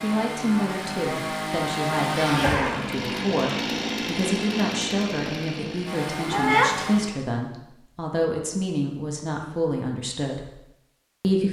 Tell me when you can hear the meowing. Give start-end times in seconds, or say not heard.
2.1-2.8, 6.2-7.0.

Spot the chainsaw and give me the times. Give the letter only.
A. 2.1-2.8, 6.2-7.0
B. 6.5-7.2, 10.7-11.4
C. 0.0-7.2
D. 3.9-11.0
C.